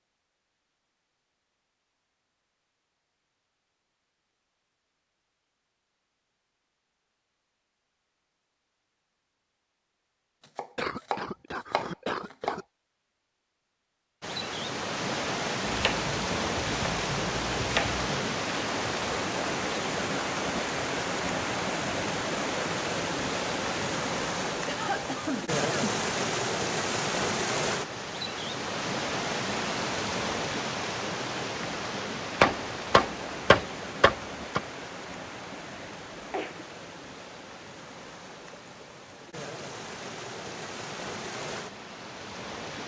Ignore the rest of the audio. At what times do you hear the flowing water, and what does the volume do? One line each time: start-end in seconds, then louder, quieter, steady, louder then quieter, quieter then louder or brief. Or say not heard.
14.2-42.8 quieter.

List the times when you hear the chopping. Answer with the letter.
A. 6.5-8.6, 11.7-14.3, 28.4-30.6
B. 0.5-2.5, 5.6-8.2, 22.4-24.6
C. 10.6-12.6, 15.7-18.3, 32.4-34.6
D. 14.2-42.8
C.